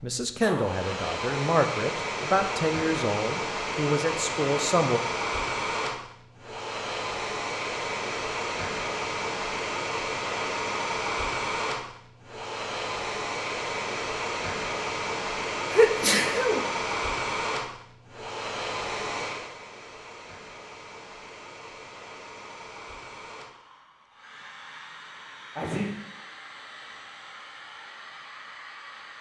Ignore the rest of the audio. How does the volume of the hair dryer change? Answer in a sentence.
The loudness of the hair dryer goes down.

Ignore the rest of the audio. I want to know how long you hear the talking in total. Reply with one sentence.
The talking can be heard for 5 seconds in total.